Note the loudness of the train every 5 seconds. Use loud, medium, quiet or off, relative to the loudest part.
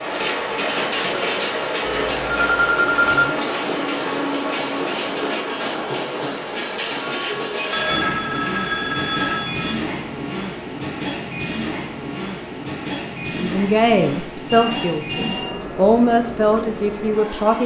loud, loud, medium, medium.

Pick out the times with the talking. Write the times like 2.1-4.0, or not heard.
13.3-17.6.